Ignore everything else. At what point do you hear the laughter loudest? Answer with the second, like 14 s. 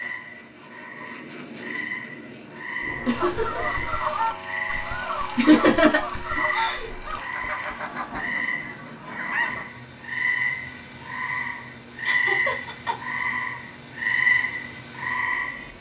6 s.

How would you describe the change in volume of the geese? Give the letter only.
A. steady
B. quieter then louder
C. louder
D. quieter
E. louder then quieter
D.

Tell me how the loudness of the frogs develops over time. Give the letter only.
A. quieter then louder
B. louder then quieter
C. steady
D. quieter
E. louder
E.